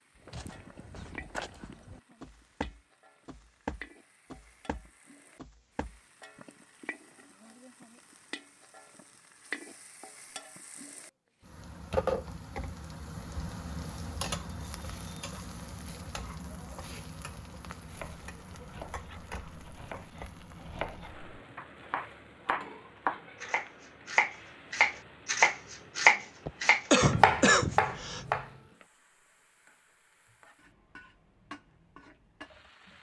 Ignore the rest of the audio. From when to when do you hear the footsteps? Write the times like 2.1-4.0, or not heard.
0.1-6.0.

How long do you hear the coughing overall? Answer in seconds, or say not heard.
2 s.